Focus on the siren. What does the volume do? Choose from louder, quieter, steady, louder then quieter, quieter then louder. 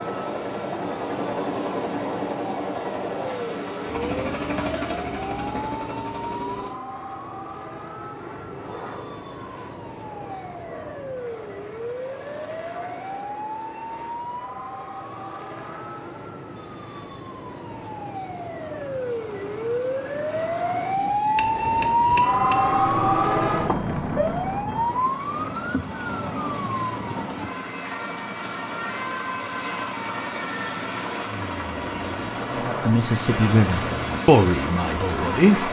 louder then quieter.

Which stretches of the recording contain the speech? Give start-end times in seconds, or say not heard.
32.5-35.6.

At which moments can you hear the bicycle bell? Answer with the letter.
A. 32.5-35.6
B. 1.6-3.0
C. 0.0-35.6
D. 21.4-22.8
D.